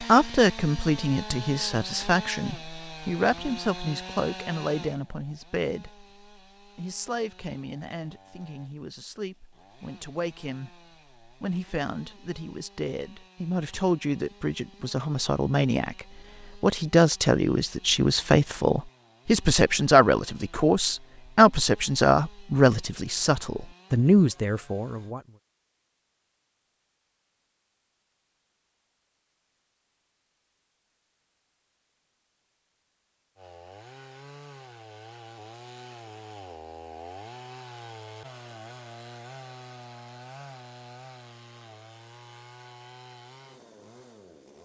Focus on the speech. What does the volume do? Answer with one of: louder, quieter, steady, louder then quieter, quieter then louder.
quieter then louder.